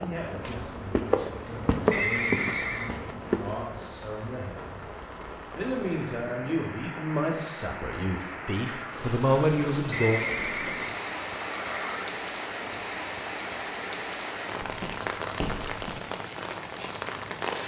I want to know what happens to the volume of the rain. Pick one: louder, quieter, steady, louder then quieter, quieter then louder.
louder.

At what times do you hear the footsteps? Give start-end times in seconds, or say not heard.
0.0-3.5, 14.6-16.0.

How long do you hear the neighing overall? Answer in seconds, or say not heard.
3 s.